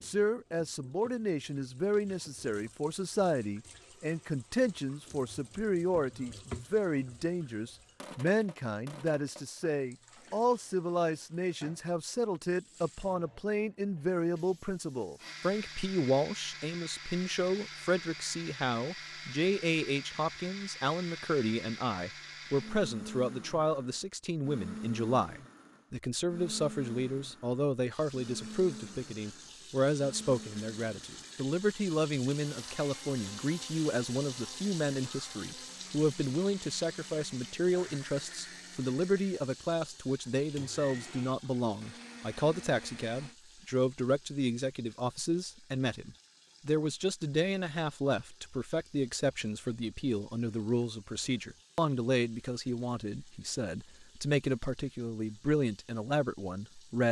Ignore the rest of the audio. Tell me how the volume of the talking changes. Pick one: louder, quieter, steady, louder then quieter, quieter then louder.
steady.